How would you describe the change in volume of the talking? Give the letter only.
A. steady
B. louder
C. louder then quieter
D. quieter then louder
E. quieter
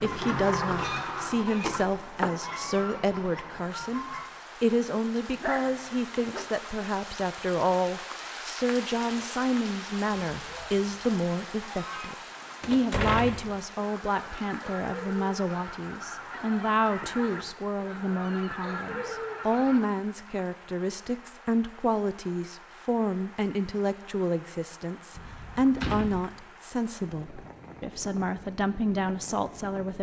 A.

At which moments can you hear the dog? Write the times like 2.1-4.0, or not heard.
5.3-6.5.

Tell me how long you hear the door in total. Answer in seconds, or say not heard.
4 s.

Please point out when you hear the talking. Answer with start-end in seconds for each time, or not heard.
0.0-29.9.